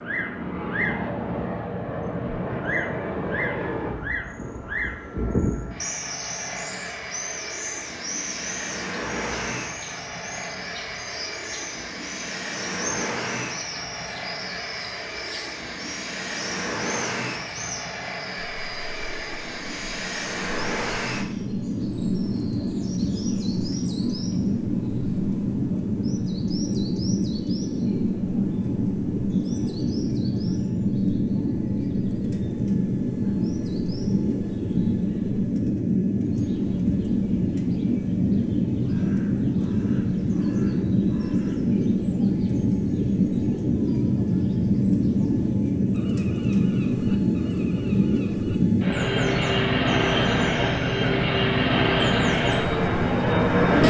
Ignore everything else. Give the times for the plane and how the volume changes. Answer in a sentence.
The plane can be heard from 0.0 to 53.8 s, getting louder.